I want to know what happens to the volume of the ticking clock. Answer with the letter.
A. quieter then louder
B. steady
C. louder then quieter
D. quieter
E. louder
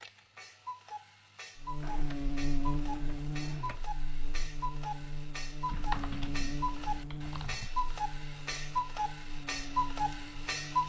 E.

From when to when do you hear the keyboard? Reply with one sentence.
You can hear the keyboard from 1.8 to 4.0 s and from 5.7 to 7.7 s.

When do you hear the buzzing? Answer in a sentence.
You can hear the buzzing from 1.6 to 10.8 s.